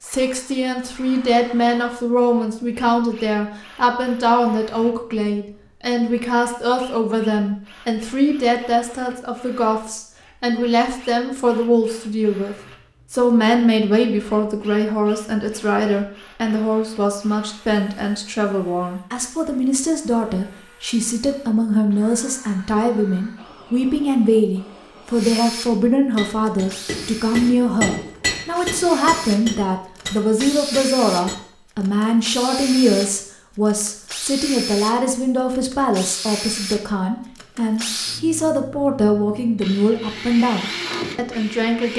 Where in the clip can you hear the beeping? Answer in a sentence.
You can't hear the beeping here.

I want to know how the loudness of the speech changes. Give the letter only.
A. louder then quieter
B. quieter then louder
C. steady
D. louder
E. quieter
C.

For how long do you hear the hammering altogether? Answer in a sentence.
The hammering can be heard for 5 seconds in total.